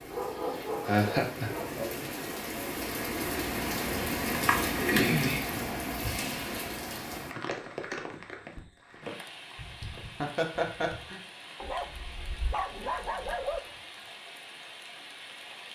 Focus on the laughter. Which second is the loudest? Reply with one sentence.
The loudest moment of the laughter is at 1 second.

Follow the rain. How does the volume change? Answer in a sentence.
The volume of the rain goes up, then down.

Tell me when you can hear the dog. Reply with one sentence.
The dog can be heard from 0.1 to 1.8 s and from 11.6 to 13.6 s.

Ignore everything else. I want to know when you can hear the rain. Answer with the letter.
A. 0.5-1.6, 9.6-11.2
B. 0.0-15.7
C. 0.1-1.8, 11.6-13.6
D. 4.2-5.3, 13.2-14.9
B.